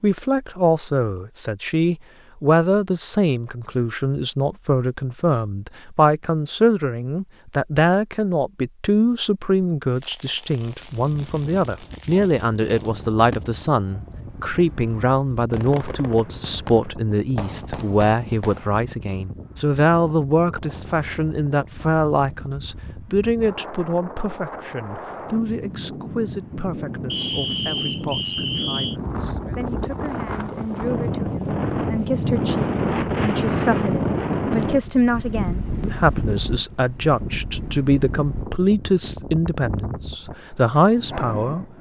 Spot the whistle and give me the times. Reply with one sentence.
The whistle can be heard from 27.1 to 28.9 s.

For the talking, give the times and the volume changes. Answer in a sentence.
The talking can be heard from 0.0 to 41.7 s, getting quieter then louder.